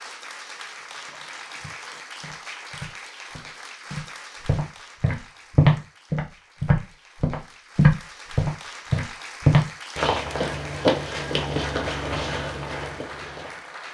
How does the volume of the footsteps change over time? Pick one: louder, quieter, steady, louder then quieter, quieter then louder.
louder then quieter.